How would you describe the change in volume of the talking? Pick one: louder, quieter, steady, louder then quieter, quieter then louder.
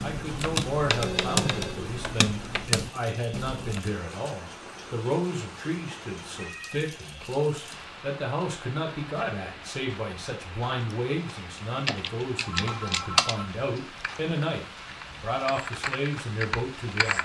steady.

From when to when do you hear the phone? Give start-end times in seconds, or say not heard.
0.9-1.9, 6.3-6.8, 12.3-13.5.